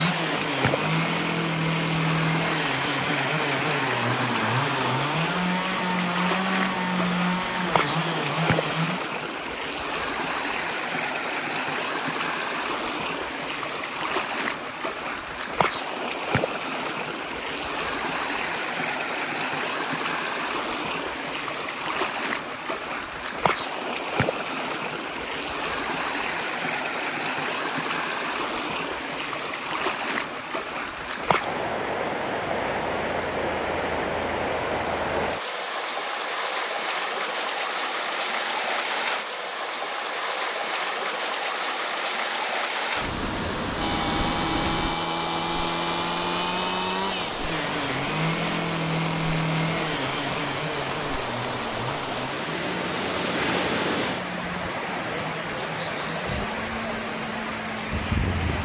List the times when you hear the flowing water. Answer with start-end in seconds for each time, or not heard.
0.0-58.5.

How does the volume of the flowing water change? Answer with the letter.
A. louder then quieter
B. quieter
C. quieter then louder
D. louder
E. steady
E.